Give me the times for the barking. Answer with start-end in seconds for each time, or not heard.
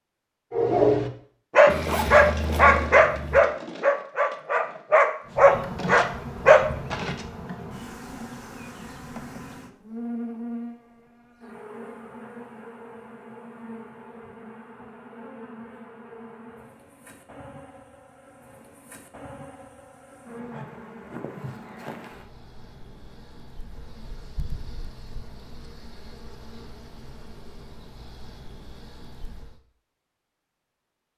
0.5-7.2.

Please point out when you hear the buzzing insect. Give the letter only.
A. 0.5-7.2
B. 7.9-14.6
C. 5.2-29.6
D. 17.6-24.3
C.